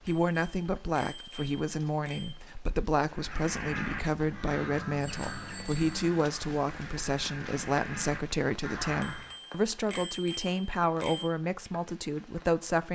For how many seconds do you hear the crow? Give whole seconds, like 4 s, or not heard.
6 s.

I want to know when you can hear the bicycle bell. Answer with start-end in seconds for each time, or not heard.
0.1-2.4, 5.0-6.0, 9.0-11.3.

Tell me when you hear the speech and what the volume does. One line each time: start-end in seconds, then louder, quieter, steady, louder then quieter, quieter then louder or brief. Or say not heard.
0.1-12.9 steady.